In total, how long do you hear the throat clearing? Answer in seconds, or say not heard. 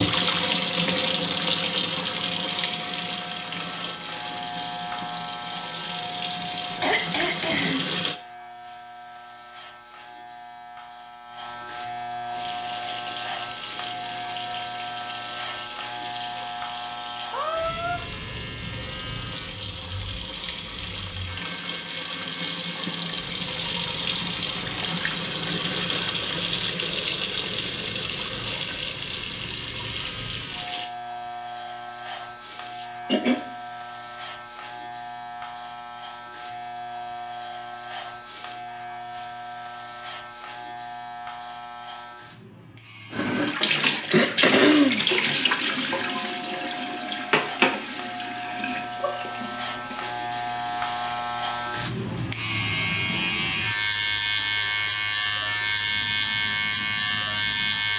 3 s.